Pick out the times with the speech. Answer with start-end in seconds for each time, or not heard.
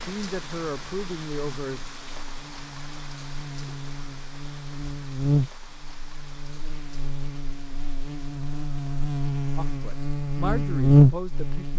0.1-1.8, 9.6-11.7.